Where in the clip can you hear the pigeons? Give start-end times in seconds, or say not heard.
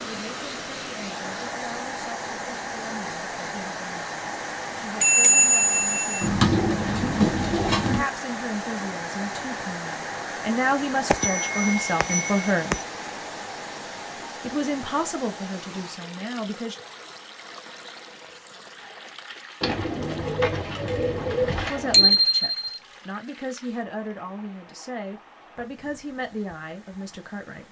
6.2-8.1, 19.6-22.2.